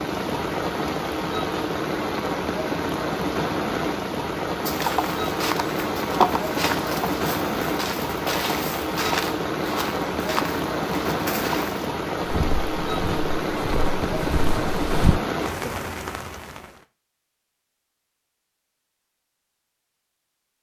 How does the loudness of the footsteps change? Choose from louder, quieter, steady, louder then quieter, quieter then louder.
quieter.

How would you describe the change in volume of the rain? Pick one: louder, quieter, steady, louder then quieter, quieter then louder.
steady.